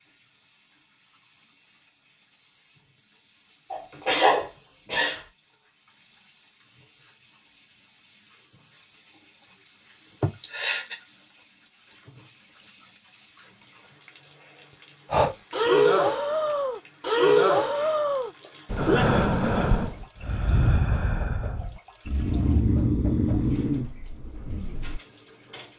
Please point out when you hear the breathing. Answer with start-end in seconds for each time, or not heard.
15.1-25.0.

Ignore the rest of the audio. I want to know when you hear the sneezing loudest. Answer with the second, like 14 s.
4 s.